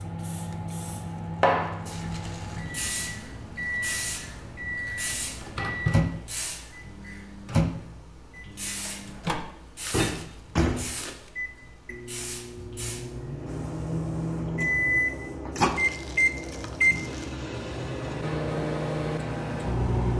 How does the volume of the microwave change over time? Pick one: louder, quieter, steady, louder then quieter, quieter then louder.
louder.